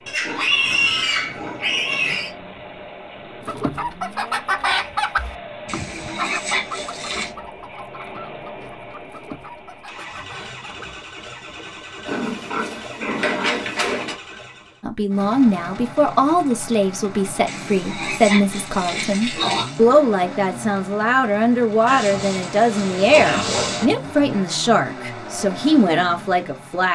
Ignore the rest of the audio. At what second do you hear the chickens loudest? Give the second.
5 s.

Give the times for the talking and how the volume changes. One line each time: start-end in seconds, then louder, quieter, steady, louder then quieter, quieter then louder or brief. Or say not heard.
14.8-26.8 steady.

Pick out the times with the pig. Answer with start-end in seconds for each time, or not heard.
0.1-2.3, 5.7-7.3, 12.1-14.2, 17.4-19.8, 21.9-23.9.